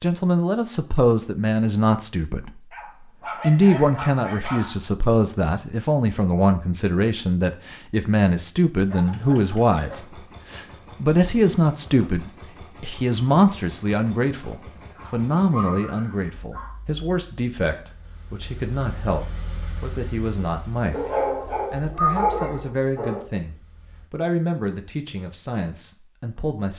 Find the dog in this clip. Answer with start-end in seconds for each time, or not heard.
2.7-4.8, 8.8-10.1, 14.9-16.8, 20.9-23.2.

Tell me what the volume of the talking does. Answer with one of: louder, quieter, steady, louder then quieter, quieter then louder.
quieter.